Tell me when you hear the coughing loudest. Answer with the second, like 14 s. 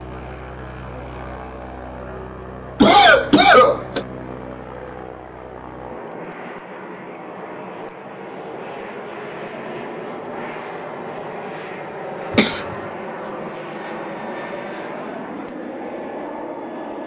3 s.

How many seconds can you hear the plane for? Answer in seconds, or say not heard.
17 s.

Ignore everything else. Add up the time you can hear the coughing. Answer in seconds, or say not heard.
2 s.